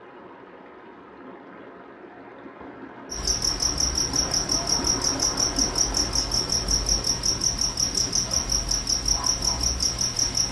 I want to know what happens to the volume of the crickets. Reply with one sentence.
The volume of the crickets stays about the same.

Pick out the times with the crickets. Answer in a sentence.
The crickets can be heard from 3.1 to 10.4 s.